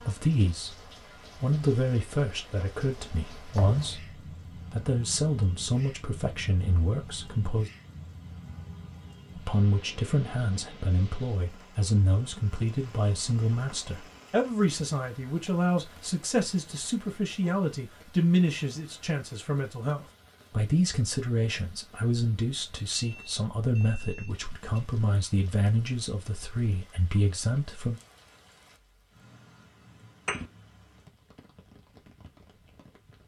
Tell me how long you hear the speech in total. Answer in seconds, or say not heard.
26 s.